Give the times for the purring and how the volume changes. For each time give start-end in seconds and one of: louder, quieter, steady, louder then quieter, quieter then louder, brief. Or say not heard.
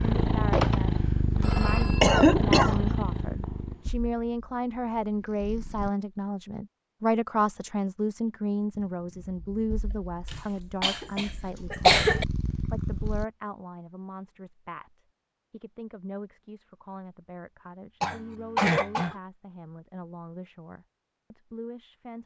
0.0-5.9 quieter
8.8-13.2 quieter then louder.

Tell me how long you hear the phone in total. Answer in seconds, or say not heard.
2 s.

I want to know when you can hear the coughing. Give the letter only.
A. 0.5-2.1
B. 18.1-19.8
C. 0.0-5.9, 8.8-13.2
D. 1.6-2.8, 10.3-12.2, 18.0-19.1
D.